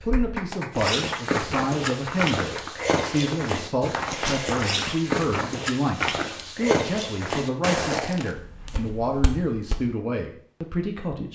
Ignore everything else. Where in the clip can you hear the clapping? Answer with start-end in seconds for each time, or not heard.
0.0-5.0.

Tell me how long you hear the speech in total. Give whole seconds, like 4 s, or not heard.
11 s.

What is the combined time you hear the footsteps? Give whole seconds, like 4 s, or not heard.
9 s.